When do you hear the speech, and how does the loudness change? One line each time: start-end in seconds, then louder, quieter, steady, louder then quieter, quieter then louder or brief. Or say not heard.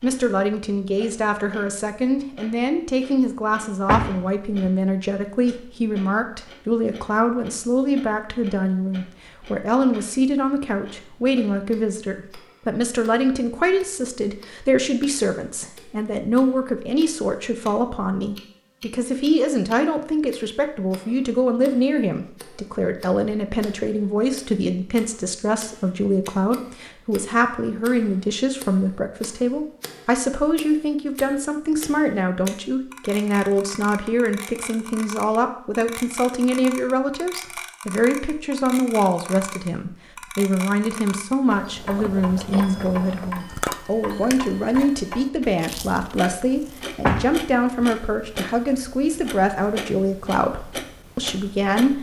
0.0-51.9 steady.